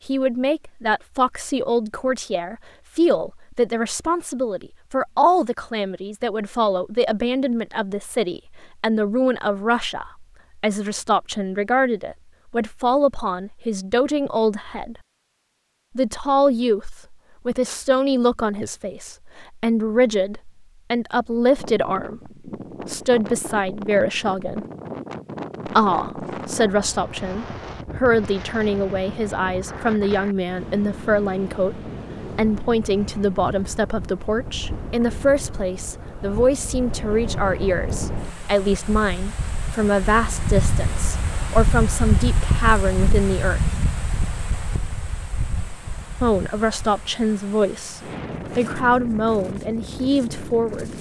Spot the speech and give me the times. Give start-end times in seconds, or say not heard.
0.1-14.9, 15.9-24.6, 25.6-43.7, 46.2-50.9.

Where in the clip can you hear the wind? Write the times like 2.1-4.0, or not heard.
21.6-50.9.